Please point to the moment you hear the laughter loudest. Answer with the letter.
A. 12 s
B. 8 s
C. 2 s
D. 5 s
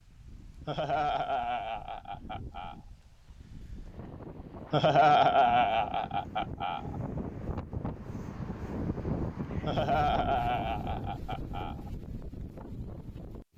D.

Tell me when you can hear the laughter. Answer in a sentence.
The laughter can be heard from 0.7 to 2.8 s, from 4.7 to 7.0 s and from 9.7 to 11.9 s.